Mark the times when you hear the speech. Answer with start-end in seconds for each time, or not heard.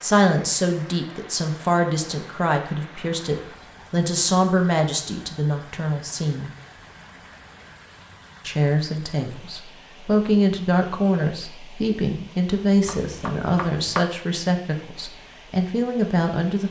0.0-6.5, 8.4-16.6.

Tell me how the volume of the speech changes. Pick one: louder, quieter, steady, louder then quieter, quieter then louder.
steady.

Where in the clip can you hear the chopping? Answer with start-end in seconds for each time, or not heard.
12.8-14.0.